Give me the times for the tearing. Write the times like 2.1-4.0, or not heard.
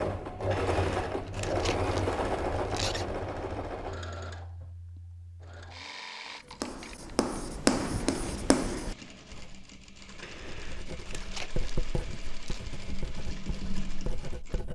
0.5-3.0, 10.2-12.6.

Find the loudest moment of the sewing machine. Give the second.
2 s.